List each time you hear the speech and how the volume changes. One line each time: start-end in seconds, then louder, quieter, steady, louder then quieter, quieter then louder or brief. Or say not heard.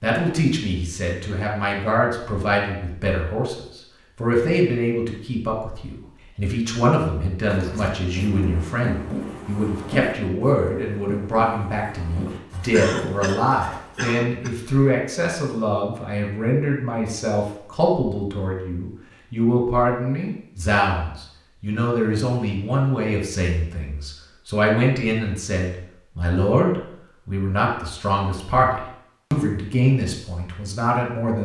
0.0-31.3 steady.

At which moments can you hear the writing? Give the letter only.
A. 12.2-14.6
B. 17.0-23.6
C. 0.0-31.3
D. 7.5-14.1
D.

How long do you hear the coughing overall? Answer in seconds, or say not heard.
2 s.